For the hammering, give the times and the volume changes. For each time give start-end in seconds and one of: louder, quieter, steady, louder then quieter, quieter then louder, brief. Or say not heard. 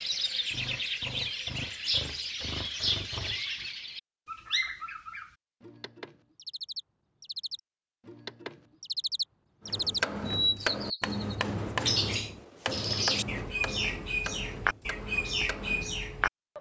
9.7-15.9 quieter.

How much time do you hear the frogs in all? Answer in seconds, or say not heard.
not heard.